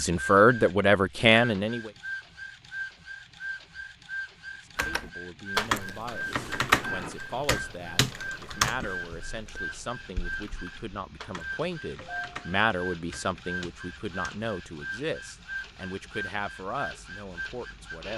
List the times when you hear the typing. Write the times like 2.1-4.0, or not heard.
4.8-14.4.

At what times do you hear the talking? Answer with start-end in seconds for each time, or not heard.
0.0-1.9, 4.7-18.1.